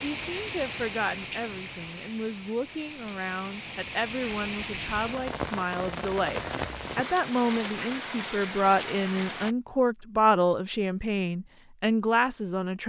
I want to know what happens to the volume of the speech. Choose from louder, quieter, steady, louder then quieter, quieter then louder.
louder.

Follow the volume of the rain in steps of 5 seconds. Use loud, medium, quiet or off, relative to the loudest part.
loud, loud, off.